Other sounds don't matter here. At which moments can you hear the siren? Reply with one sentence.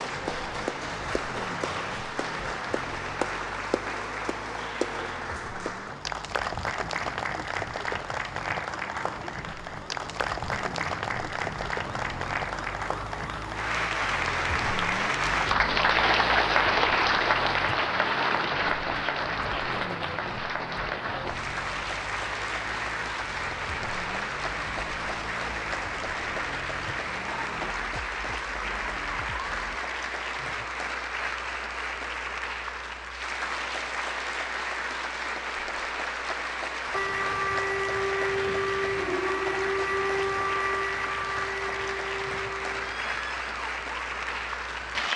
You can hear the siren from 0.0 to 29.8 s and from 36.9 to 45.1 s.